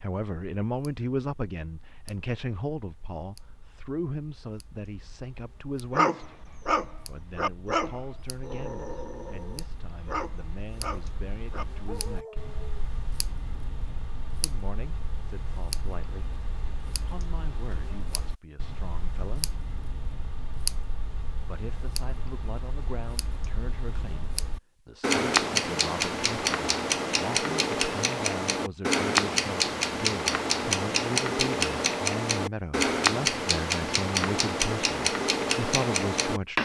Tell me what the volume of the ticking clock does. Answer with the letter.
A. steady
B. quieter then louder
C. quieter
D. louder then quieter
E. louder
E.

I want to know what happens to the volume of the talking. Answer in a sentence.
The volume of the talking goes down, then up.